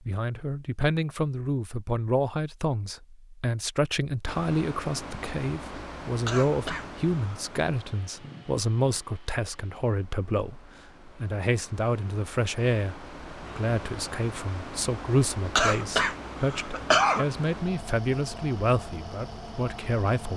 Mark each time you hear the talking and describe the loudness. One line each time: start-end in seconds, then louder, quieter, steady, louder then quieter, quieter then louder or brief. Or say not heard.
0.1-20.3 steady.